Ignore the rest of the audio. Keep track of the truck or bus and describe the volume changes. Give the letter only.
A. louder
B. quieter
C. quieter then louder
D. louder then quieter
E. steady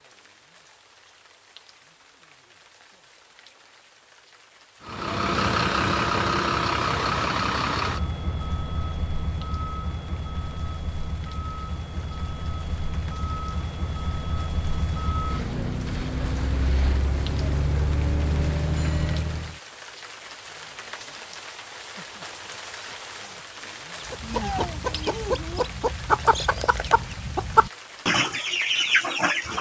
C.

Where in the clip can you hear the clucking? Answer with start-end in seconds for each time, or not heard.
24.0-29.5.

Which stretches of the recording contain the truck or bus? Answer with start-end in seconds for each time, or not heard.
4.8-19.6.